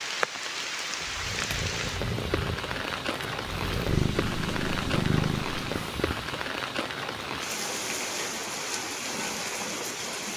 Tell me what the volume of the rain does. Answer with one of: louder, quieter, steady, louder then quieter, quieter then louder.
steady.